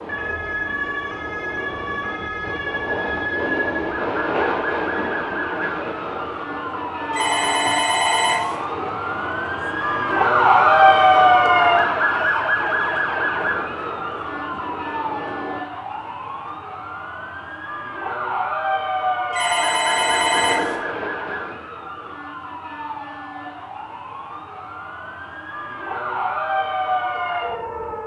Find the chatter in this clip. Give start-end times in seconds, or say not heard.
not heard.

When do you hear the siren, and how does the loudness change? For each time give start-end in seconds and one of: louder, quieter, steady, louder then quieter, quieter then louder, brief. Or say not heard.
0.0-28.0 louder then quieter.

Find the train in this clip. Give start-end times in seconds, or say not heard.
0.0-15.7, 19.4-22.2.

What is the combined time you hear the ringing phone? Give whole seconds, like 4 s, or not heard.
3 s.